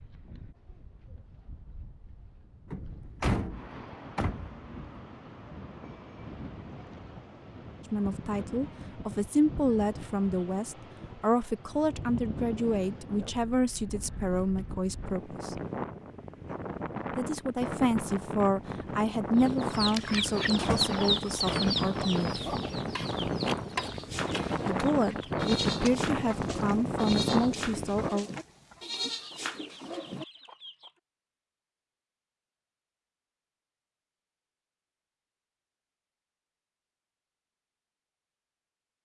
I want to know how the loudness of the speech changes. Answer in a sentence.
The volume of the speech stays about the same.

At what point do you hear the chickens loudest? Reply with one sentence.
The volume of the chickens peaks at 21 seconds.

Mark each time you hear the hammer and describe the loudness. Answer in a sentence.
The hammer can't be heard in this clip.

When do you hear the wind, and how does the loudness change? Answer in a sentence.
You can hear the wind from 0.0 to 28.1 s, getting louder.